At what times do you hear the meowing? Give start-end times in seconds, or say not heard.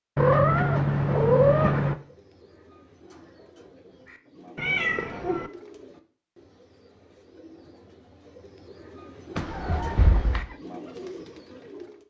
0.1-1.9, 4.5-5.5, 9.3-10.6.